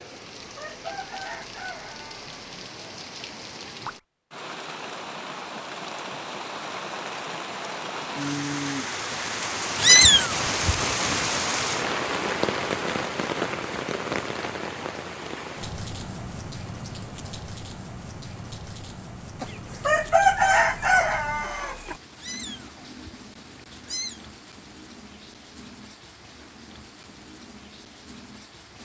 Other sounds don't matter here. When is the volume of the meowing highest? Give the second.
10 s.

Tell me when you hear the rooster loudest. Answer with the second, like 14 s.
20 s.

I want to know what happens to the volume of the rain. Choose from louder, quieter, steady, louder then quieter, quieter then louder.
louder then quieter.